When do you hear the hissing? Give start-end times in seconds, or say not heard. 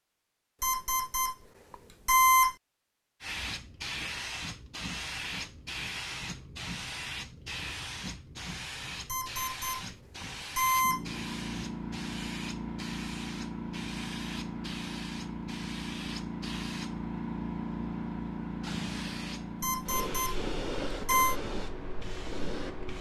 3.2-22.9.